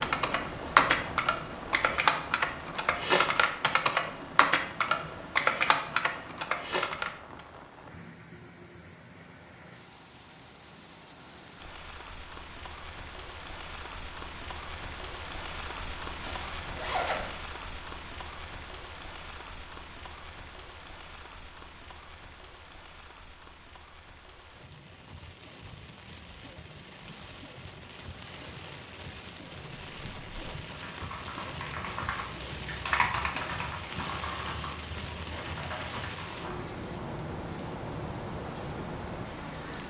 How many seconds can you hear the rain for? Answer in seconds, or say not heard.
40 s.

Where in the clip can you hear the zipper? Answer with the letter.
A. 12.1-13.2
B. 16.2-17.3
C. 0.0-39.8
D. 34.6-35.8
B.